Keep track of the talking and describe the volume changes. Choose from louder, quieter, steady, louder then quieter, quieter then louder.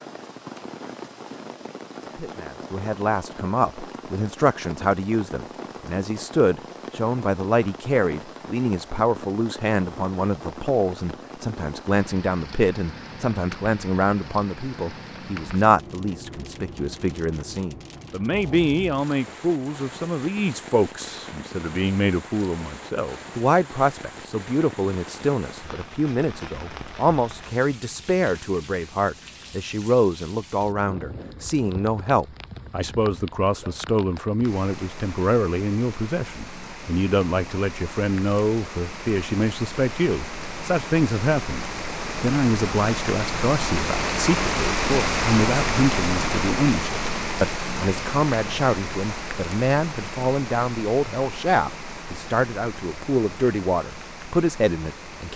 steady.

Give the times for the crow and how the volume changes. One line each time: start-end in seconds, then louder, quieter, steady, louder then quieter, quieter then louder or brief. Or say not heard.
not heard.